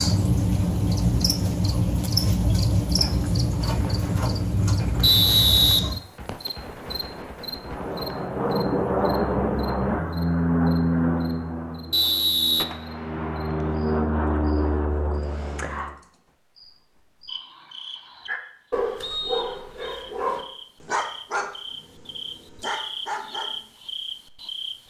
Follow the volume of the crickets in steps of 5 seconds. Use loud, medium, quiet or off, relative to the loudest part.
loud, medium, quiet, quiet, medium.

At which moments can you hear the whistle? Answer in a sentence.
The whistle can be heard from 5.0 to 6.5 s, from 11.9 to 12.7 s and from 19.0 to 20.0 s.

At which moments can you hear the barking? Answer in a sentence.
The barking can be heard from 18.2 to 23.5 s.